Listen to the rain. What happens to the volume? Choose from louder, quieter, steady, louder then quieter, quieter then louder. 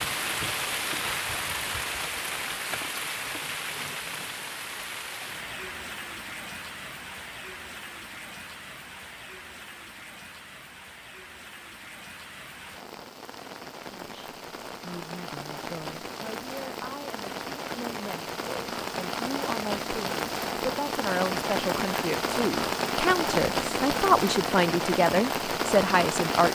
quieter then louder.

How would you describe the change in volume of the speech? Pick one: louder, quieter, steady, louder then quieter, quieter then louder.
louder.